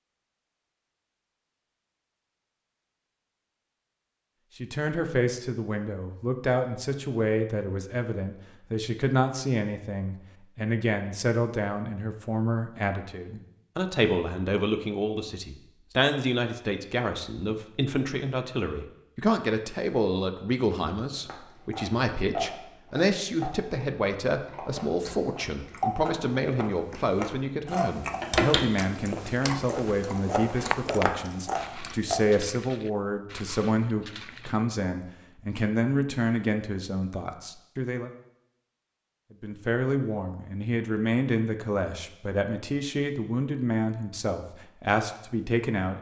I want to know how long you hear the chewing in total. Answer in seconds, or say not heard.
11 s.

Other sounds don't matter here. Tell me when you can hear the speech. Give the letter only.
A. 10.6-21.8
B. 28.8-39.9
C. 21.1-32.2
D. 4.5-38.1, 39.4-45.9
D.